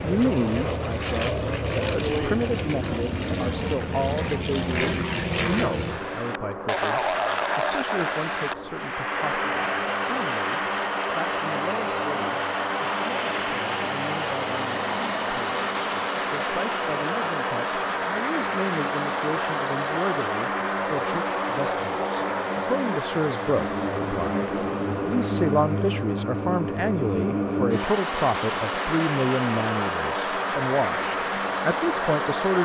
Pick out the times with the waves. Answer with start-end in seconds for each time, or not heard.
not heard.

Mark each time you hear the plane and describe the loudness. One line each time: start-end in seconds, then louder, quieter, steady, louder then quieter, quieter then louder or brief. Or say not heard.
0.0-32.6 steady.